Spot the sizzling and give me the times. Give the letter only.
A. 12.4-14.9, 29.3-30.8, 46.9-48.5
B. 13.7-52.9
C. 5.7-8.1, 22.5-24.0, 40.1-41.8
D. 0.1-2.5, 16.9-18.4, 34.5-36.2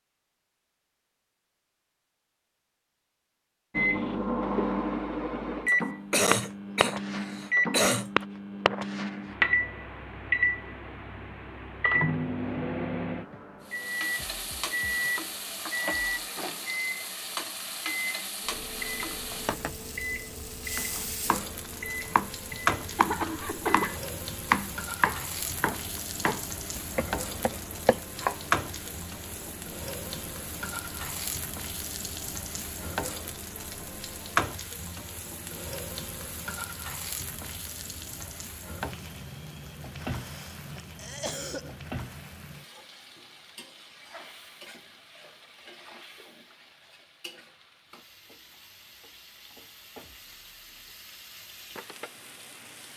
B.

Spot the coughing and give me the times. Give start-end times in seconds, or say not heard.
5.7-8.1, 22.5-24.0, 40.1-41.8.